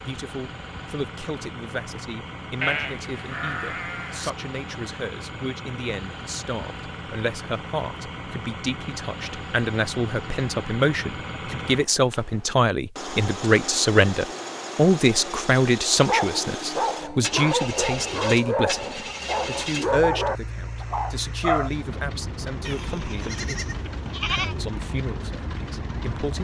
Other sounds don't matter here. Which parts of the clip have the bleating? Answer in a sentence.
The bleating can be heard from 2.6 to 4.3 s and from 22.6 to 24.6 s.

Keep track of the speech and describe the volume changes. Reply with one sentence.
The volume of the speech goes up, then down.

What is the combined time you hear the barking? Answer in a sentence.
You can hear the barking for 6 seconds altogether.